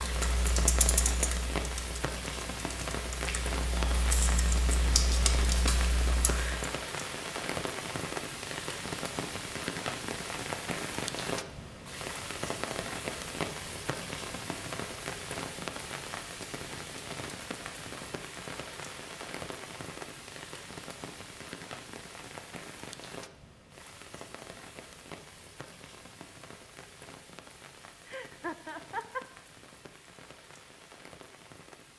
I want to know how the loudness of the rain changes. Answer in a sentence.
The volume of the rain goes down.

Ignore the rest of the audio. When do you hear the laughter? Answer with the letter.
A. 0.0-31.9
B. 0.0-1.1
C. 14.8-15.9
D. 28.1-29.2
D.